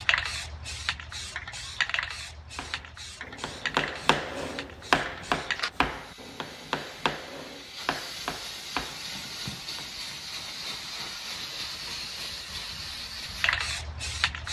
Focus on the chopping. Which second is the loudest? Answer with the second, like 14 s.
5 s.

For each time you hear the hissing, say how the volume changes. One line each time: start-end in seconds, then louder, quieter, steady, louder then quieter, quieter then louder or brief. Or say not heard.
0.0-14.4 quieter then louder.